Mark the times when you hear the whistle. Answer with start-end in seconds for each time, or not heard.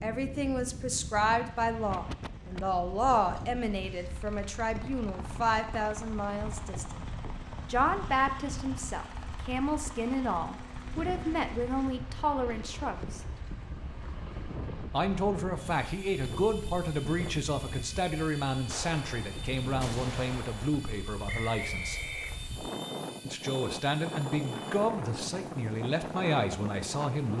21.2-22.4.